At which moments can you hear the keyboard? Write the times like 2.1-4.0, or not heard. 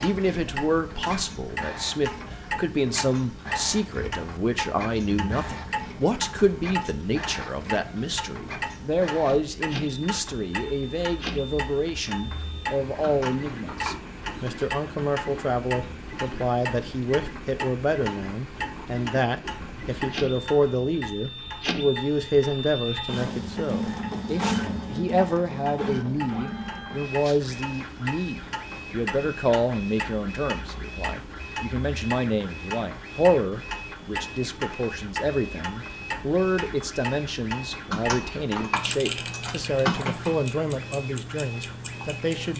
13.0-14.8, 37.9-40.4.